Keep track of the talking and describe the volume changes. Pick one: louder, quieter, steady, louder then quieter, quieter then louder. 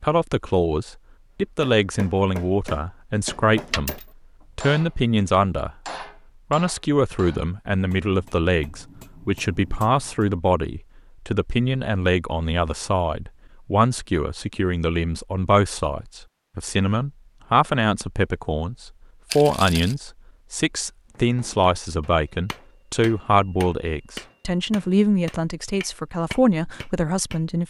steady.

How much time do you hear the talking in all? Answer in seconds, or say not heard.
27 s.